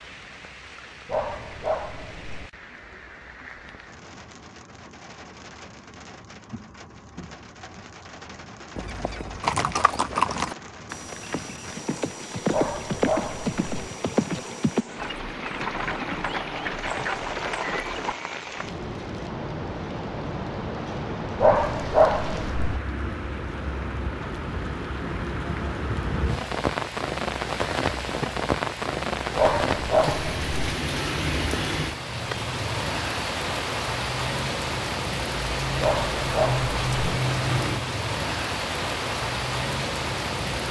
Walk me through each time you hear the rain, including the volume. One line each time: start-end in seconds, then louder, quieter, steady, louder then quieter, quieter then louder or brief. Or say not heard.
0.0-40.6 louder.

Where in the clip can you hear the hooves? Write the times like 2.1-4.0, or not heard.
8.8-18.1.